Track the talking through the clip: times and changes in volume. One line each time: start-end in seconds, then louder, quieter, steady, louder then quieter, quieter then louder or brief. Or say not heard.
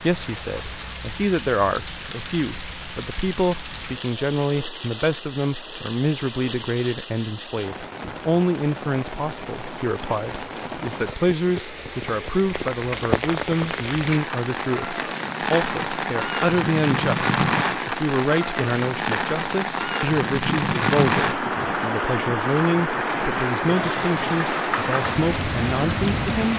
0.0-26.5 steady.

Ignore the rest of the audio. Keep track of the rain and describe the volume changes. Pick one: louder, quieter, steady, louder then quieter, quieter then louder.
louder.